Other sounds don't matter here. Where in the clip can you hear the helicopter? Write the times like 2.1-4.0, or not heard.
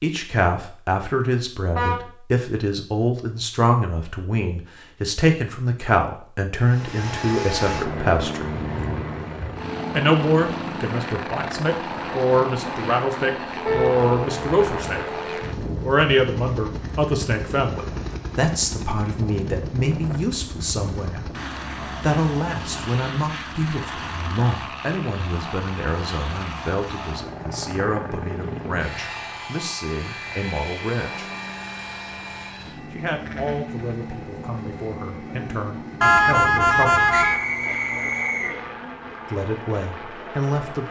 6.6-40.8.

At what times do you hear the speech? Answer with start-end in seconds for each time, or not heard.
0.0-8.5, 9.9-15.2, 15.8-21.3, 21.9-31.3, 32.9-37.1, 39.3-40.8.